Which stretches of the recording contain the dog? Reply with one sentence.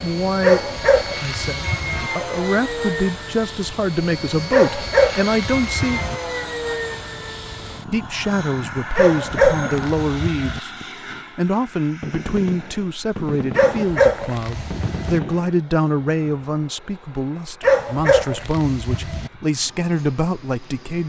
You can hear the dog from 0.4 to 2.1 s, from 4.5 to 6.2 s, from 8.9 to 10.6 s, from 13.6 to 15.2 s and from 17.6 to 19.3 s.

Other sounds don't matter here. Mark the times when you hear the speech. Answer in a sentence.
You can hear the speech from 0.0 to 6.0 s, from 7.8 to 10.7 s and from 11.3 to 21.0 s.